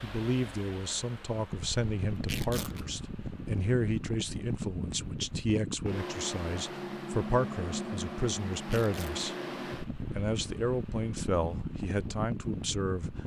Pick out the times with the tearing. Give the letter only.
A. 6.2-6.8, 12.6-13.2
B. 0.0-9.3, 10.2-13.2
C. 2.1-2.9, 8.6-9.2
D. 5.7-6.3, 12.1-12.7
C.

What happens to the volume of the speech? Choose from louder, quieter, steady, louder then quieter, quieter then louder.
steady.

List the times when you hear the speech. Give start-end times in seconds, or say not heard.
0.0-9.3, 10.2-13.2.